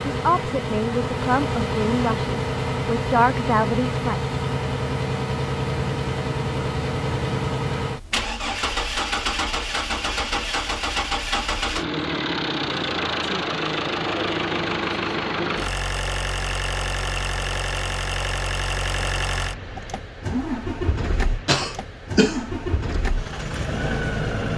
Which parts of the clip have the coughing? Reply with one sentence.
You can hear the coughing from 21.4 to 23.0 s.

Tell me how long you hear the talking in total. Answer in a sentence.
The talking can be heard for 4 seconds in total.